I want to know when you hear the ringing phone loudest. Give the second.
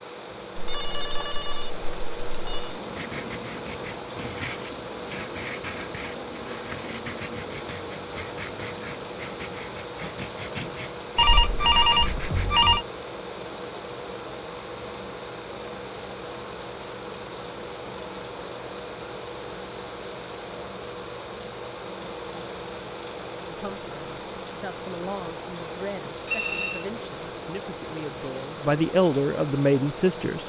12 s.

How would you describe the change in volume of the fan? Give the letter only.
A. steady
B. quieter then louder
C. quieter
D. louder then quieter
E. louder
A.